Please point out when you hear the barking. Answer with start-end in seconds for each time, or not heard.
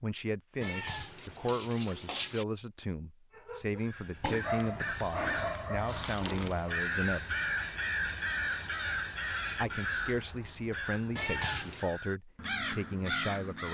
3.4-6.8.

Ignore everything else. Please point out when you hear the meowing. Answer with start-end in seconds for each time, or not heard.
0.6-2.5, 11.2-11.8.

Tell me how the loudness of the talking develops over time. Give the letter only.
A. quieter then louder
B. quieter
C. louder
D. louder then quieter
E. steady
E.